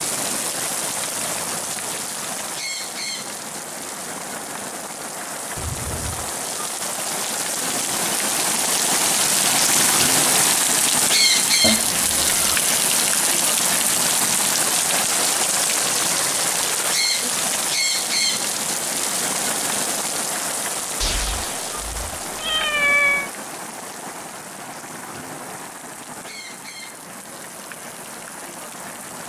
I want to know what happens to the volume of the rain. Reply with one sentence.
The loudness of the rain goes up, then down.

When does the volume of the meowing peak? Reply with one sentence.
The volume of the meowing peaks at 23 seconds.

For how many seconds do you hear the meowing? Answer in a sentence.
The meowing can be heard for 4 seconds in total.